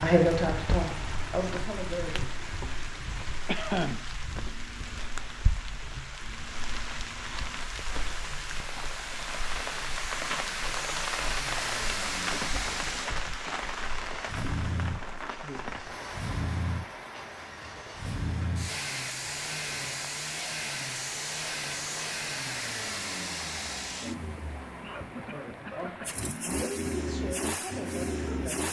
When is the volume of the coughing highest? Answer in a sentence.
The loudest moment of the coughing is at 4 seconds.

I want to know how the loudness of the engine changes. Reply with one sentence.
The volume of the engine goes up.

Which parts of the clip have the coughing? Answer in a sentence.
The coughing can be heard from 3.5 to 4.1 s, from 12.5 to 13.6 s and from 24.4 to 26.2 s.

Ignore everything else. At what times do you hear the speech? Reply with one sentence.
The speech can be heard from 0.0 to 2.2 s and from 25.2 to 28.6 s.